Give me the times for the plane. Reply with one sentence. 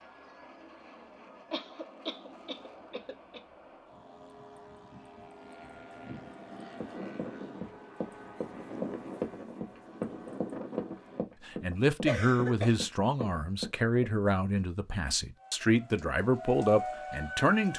The plane can be heard from 0.0 to 11.2 s.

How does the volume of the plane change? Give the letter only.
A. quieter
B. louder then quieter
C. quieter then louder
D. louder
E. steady
D.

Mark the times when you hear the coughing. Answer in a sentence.
You can hear the coughing from 1.5 to 3.4 s and from 12.1 to 12.8 s.